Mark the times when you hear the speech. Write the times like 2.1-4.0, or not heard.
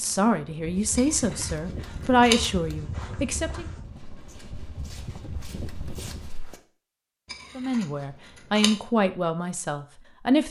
0.0-3.6, 7.5-10.4.